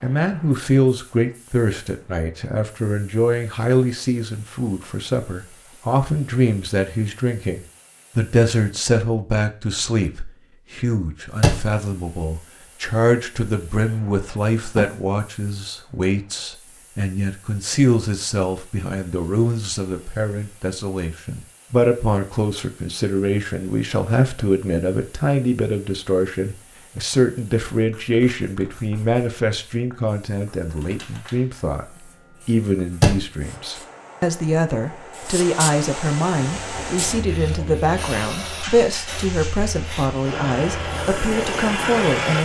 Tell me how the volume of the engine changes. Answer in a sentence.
The volume of the engine goes up.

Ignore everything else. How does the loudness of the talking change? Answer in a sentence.
The volume of the talking stays about the same.